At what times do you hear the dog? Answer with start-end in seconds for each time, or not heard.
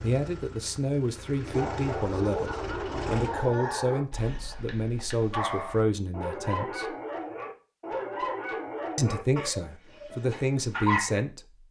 1.4-11.2.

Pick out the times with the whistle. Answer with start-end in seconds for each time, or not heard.
not heard.